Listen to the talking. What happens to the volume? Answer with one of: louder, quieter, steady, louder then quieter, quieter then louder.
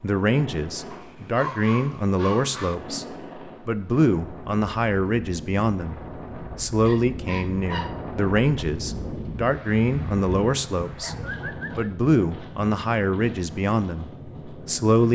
steady.